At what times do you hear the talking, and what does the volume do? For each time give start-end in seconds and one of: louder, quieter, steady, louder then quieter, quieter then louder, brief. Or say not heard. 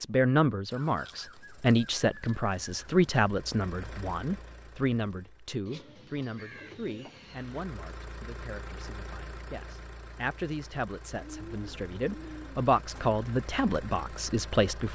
0.0-14.9 quieter then louder.